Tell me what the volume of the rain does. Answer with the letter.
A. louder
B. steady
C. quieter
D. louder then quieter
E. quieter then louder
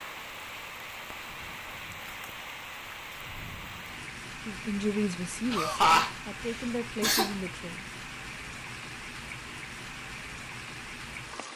B.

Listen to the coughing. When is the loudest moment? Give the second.
6 s.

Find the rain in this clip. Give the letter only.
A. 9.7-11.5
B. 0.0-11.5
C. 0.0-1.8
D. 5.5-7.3
B.